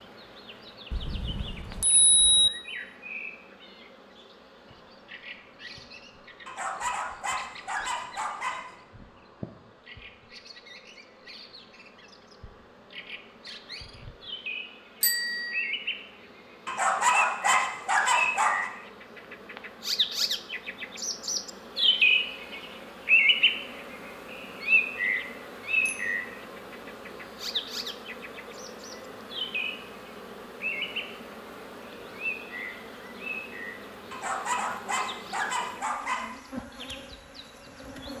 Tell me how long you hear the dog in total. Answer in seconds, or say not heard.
7 s.